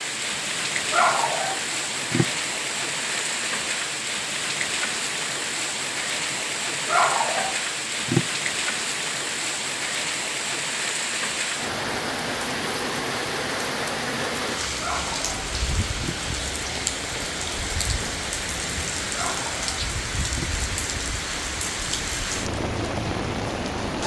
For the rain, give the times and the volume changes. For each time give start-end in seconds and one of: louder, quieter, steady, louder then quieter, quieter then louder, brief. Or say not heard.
0.0-24.0 steady.